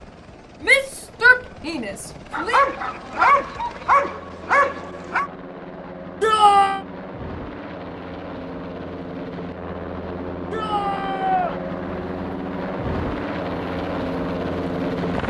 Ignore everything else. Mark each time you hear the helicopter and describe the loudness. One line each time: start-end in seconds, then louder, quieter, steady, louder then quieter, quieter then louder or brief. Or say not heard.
0.0-15.2 louder.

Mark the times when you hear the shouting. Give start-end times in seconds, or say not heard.
0.6-2.6, 6.2-6.8, 10.5-11.6.